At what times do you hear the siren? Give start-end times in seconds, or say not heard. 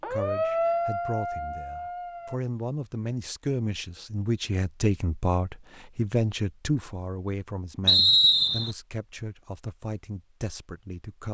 0.0-2.4.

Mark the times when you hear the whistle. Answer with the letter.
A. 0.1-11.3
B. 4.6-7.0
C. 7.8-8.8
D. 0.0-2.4
C.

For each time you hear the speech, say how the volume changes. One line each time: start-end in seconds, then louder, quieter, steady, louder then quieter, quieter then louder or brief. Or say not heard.
0.1-11.3 louder then quieter.